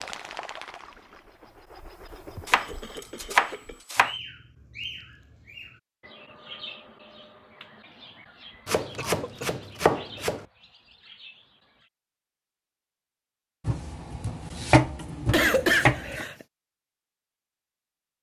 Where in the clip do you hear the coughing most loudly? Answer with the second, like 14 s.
16 s.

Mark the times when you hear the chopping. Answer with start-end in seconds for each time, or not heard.
2.5-4.2, 8.7-10.4, 13.7-16.2.